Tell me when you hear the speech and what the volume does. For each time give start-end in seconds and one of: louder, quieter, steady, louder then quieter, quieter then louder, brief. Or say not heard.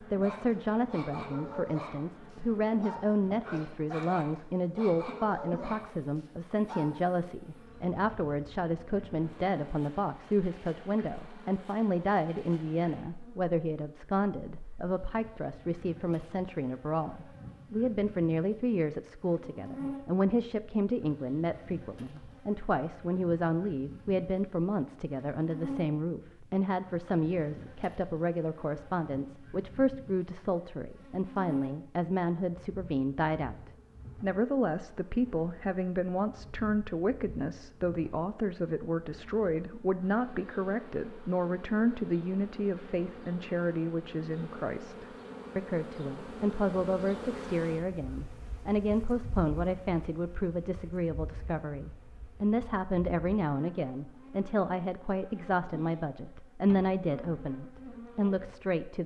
0.0-59.0 steady.